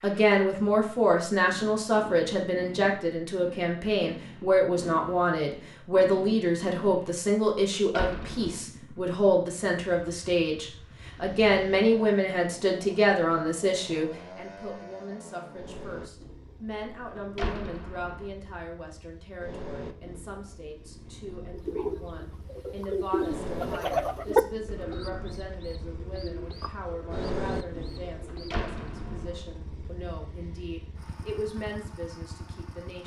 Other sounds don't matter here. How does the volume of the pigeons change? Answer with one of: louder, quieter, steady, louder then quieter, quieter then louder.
louder then quieter.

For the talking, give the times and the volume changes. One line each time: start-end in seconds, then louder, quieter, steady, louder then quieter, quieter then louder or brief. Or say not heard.
0.0-33.0 quieter.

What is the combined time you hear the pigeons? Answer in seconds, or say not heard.
7 s.